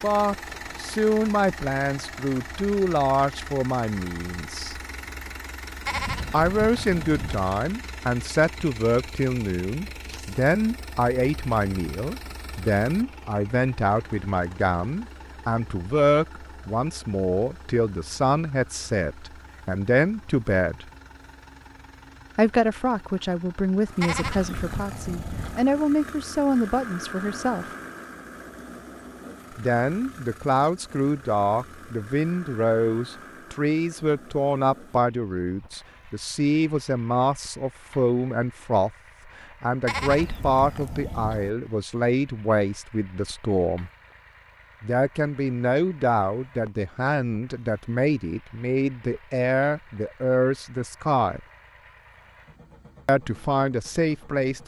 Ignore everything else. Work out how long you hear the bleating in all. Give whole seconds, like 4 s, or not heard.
5 s.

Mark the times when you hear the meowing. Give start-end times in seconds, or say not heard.
not heard.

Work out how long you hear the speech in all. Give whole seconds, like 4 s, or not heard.
47 s.